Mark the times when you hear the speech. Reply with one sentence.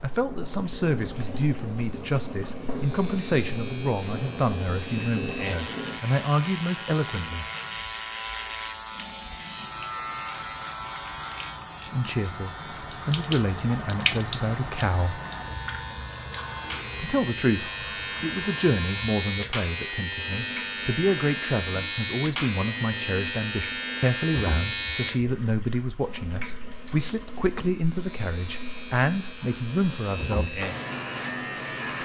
The speech can be heard from 0.0 to 7.5 s, from 11.9 to 15.2 s and from 16.9 to 30.4 s.